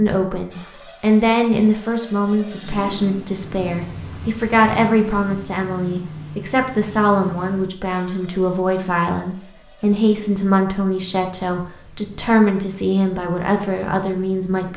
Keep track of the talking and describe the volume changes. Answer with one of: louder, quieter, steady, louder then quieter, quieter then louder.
steady.